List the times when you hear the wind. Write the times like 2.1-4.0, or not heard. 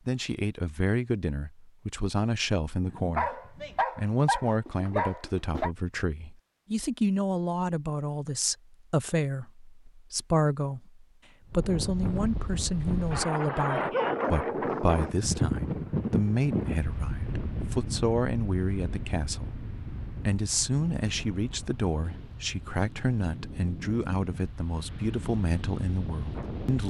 11.4-26.8.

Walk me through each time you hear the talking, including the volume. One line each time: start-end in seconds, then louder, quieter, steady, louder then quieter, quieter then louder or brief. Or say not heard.
0.1-19.6 steady
20.2-26.8 steady.